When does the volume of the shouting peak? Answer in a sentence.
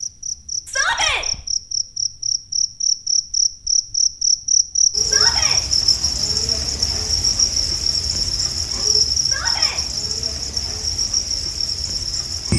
The loudest moment of the shouting is at 1 second.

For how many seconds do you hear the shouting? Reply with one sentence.
The shouting can be heard for 2 seconds in total.